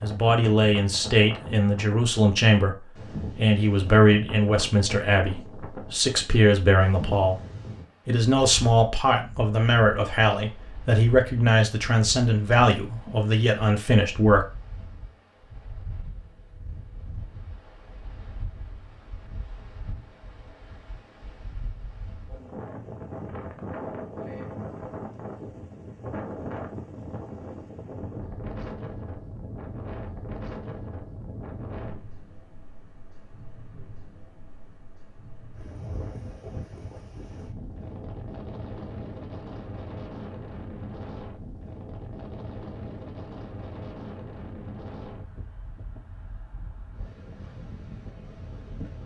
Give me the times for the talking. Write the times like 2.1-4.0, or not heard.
0.0-7.4, 8.1-14.4.